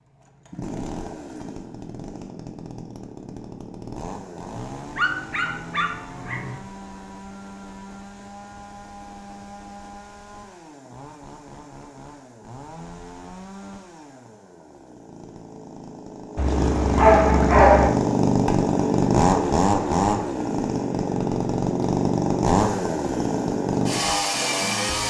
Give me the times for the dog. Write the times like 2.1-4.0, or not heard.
5.0-6.6, 16.4-17.9.